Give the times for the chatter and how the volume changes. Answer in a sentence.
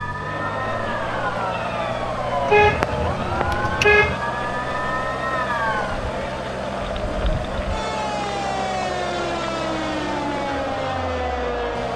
You can hear the chatter from 0.0 to 11.9 s, at a steady volume.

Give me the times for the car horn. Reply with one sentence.
You can hear the car horn from 2.5 to 4.2 s.